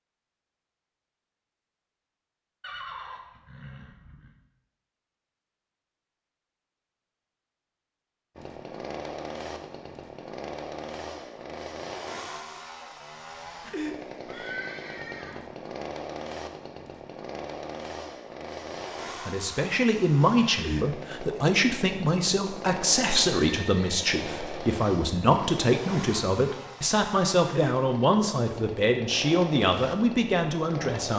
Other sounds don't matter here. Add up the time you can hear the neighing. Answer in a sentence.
The neighing can be heard for 4 seconds in total.